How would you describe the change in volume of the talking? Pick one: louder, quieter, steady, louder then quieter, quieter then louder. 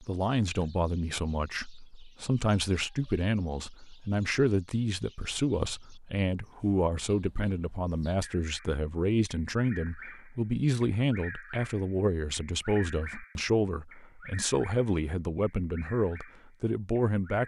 steady.